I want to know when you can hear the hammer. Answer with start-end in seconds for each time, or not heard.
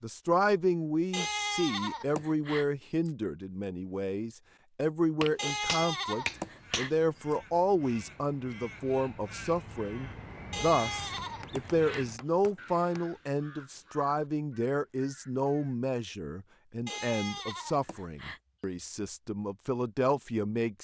5.2-7.0, 11.2-13.0.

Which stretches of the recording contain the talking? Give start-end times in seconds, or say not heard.
0.0-20.7.